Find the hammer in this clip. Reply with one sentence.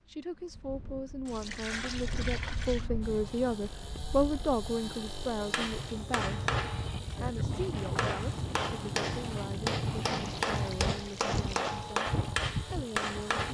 The hammer can be heard from 5.5 to 13.4 s.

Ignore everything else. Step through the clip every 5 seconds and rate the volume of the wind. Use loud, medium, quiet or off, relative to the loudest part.
medium, loud, loud.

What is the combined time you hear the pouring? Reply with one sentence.
The pouring can be heard for 3 seconds in total.